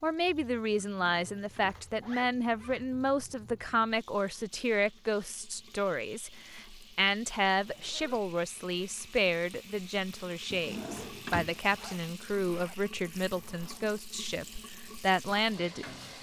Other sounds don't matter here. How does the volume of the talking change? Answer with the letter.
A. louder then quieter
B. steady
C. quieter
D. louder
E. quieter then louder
B.